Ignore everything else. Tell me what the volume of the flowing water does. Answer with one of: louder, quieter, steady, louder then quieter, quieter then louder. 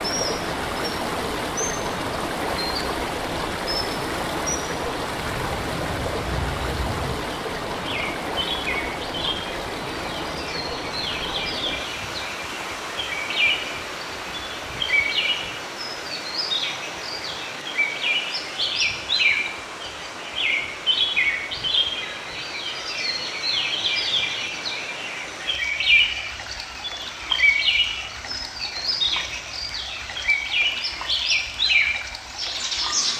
quieter.